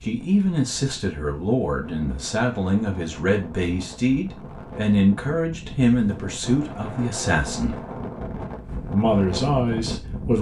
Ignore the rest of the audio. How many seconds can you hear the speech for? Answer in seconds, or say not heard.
9 s.